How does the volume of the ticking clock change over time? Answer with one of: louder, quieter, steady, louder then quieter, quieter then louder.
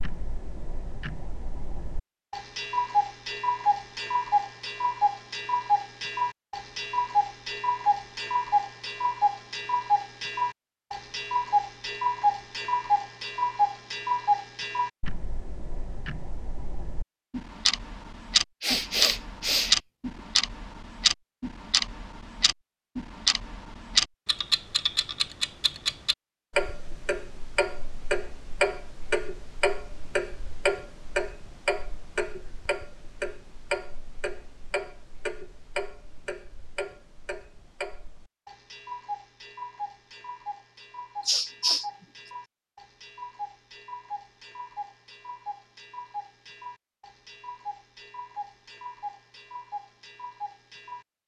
quieter.